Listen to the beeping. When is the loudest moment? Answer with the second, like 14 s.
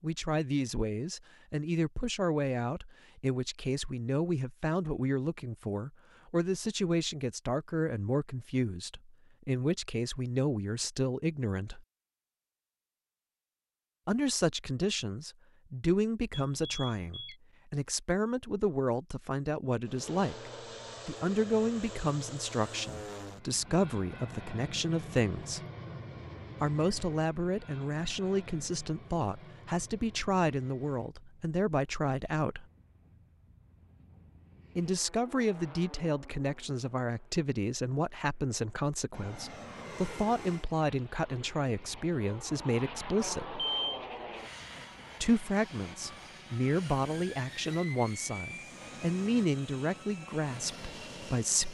44 s.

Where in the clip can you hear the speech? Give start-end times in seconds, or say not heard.
0.0-11.8, 14.1-25.6, 26.6-32.6, 34.8-43.6, 45.2-51.6.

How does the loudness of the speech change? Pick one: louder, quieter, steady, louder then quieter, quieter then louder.
steady.